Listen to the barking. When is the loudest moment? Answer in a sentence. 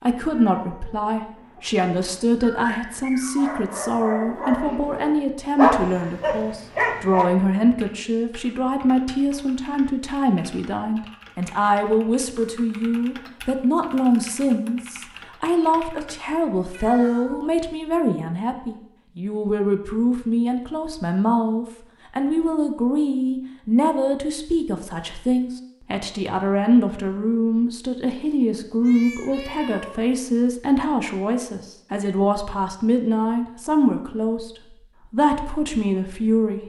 The loudest moment of the barking is at 6 seconds.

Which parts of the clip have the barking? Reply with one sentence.
You can hear the barking from 1.4 to 7.3 s.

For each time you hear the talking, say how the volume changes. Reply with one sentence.
You can hear the talking from 0.0 to 36.6 s, at a steady volume.